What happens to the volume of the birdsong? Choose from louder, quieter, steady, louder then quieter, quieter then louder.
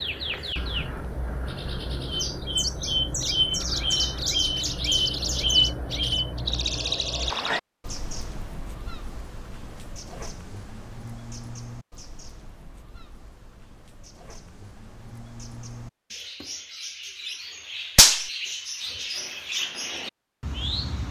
quieter then louder.